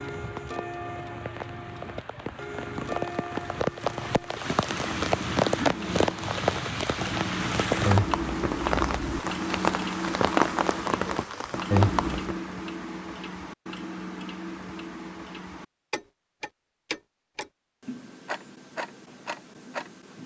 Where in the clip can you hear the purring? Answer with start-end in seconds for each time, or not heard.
not heard.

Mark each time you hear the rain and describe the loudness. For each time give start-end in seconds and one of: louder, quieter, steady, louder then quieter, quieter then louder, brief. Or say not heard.
0.0-12.4 louder.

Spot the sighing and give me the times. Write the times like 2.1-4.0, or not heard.
not heard.